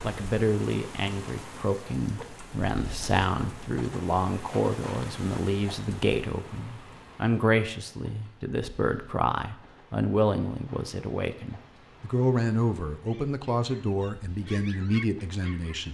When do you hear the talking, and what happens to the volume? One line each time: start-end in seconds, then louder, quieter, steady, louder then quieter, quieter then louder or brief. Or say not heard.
0.0-15.9 steady.